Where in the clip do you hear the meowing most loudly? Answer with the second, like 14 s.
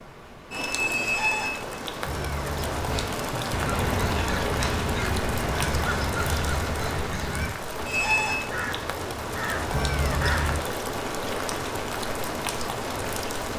10 s.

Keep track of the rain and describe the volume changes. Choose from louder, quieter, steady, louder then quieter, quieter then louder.
steady.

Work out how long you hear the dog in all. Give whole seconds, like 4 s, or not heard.
not heard.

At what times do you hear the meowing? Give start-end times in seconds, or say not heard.
2.0-3.0, 5.6-7.5, 9.7-10.6.